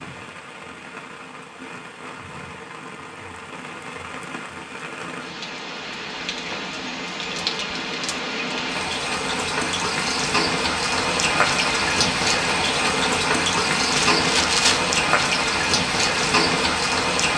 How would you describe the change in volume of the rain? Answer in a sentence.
The loudness of the rain goes up.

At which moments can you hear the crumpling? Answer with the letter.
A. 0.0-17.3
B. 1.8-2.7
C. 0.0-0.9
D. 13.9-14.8
D.